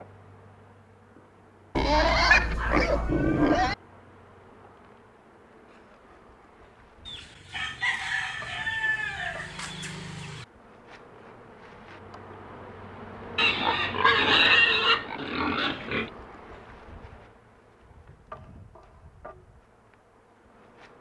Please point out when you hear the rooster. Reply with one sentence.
The rooster can be heard from 7.0 to 10.4 s.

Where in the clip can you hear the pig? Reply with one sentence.
You can hear the pig from 1.8 to 3.8 s and from 13.3 to 16.1 s.